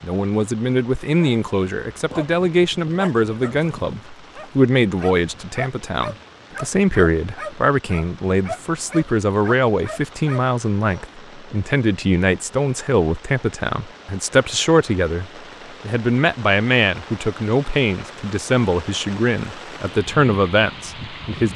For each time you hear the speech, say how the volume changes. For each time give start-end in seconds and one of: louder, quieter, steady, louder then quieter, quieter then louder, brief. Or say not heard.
0.0-21.5 steady.